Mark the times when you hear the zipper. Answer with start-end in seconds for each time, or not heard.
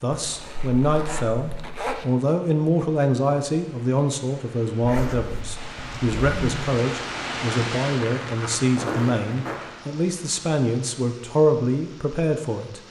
0.1-2.0, 4.8-6.6, 8.8-9.6.